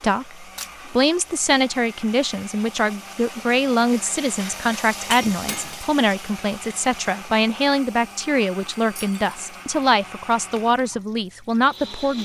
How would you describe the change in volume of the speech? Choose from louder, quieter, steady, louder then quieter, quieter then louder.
steady.